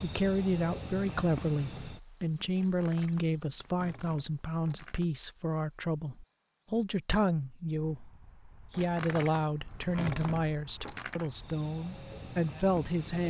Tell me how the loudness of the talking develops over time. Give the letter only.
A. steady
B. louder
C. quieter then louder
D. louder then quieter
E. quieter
A.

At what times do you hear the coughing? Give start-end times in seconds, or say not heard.
not heard.